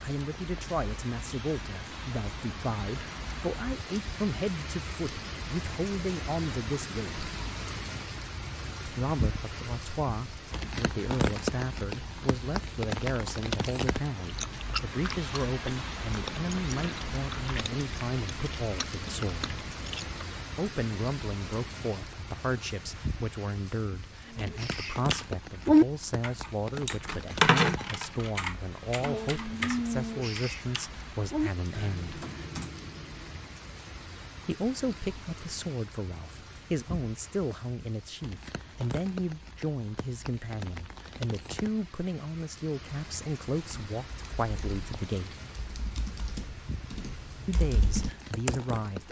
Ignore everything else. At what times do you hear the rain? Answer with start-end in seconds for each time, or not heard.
0.0-49.0.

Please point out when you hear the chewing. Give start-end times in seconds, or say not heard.
14.2-20.2.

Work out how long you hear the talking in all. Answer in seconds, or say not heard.
42 s.